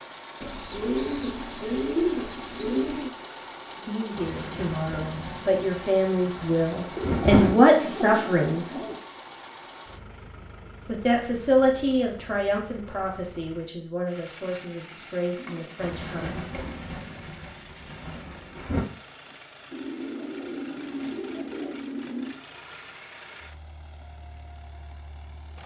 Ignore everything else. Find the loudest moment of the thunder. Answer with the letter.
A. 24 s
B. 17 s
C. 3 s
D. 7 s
D.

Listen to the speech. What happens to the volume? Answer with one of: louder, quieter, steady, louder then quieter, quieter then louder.
louder then quieter.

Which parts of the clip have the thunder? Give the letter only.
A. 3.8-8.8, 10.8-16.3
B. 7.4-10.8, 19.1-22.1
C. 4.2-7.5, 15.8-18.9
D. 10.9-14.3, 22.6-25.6
C.